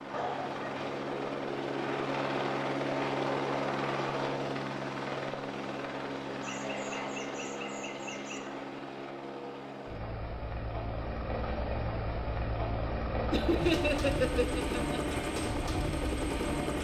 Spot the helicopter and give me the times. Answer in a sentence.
The helicopter can be heard from 0.0 to 16.8 s.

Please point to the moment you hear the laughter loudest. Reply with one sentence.
The volume of the laughter peaks at 14 seconds.